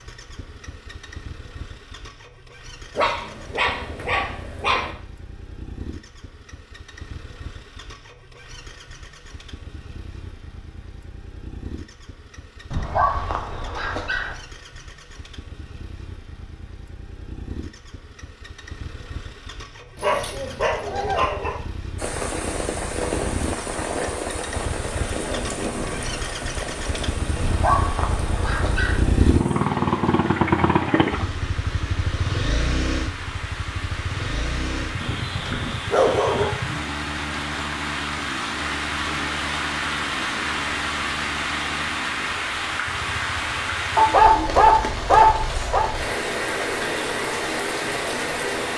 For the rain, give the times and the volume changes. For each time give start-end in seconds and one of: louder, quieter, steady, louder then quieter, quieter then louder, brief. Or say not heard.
21.9-48.7 quieter then louder.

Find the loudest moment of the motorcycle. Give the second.
30 s.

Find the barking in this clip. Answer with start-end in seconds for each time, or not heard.
3.0-5.0, 12.7-14.3, 19.9-21.6, 27.4-29.0, 35.0-36.5, 44.0-45.9.